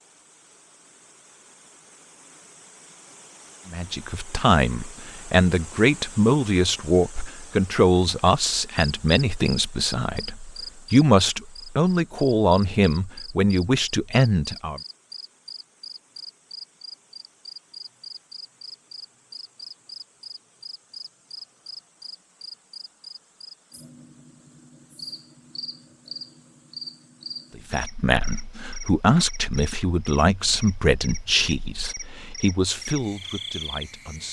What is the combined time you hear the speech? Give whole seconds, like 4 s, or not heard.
18 s.